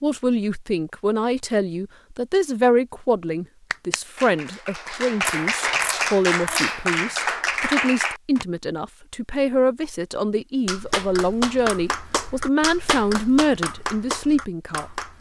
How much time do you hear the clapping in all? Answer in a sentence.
The clapping can be heard for 9 seconds in total.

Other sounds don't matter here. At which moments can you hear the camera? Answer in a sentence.
You can hear the camera from 5.2 to 6.7 s.